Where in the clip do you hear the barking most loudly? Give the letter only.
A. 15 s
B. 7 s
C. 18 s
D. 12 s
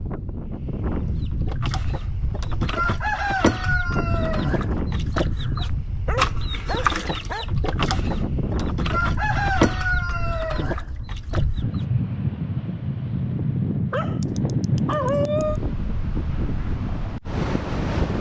A.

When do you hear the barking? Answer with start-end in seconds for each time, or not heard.
5.5-7.5, 13.9-15.6.